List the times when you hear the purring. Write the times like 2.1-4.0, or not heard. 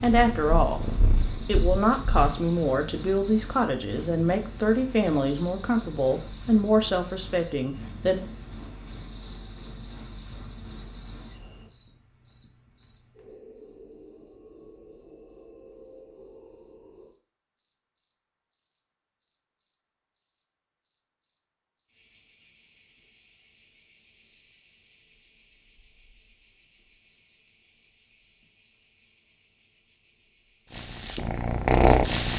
0.1-2.3, 30.7-32.3.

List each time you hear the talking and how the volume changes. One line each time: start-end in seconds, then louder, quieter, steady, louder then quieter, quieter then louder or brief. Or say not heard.
0.0-0.8 brief
1.4-8.2 steady.